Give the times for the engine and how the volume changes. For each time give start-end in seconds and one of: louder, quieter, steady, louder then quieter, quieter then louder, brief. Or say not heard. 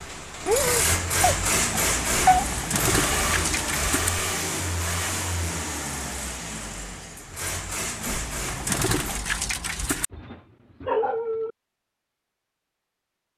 0.0-9.2 quieter.